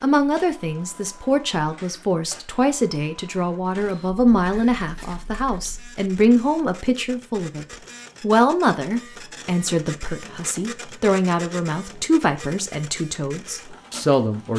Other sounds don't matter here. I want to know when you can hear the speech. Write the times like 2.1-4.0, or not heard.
0.0-14.5.